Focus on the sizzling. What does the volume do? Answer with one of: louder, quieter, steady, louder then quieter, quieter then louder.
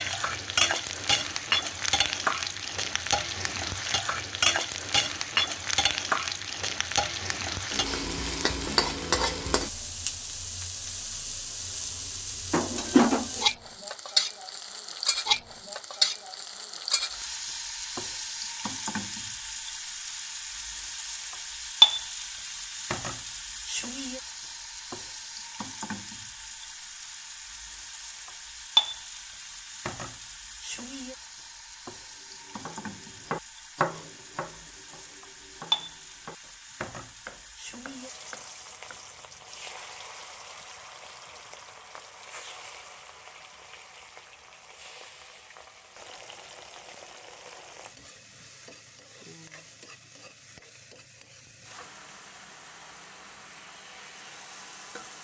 quieter.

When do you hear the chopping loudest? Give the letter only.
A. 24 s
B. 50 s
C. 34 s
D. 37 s
C.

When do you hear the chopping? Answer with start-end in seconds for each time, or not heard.
31.9-39.0.